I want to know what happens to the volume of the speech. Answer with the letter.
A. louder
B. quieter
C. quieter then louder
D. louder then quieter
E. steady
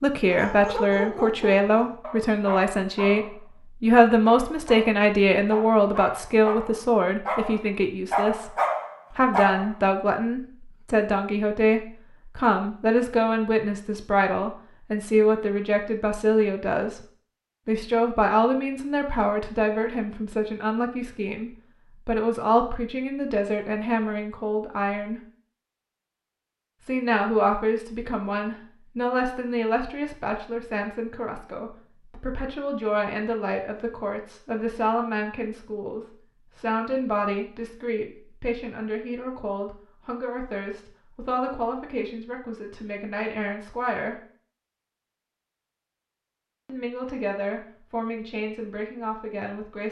B.